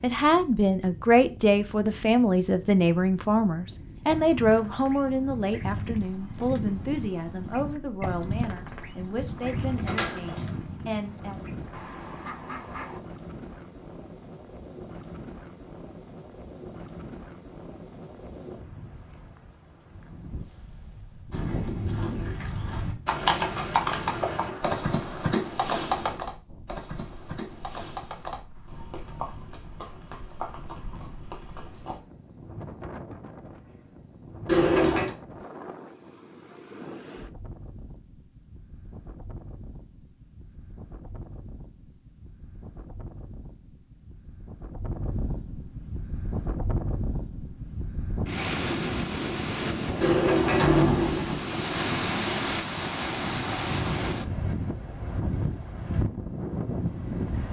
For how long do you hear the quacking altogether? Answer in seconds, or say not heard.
9 s.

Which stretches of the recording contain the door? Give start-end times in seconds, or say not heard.
9.4-10.6, 34.5-35.1, 50.0-51.4.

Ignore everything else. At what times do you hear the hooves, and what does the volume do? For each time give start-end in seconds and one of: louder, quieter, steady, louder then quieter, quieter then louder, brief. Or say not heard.
21.3-32.0 quieter.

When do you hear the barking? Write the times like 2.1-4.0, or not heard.
not heard.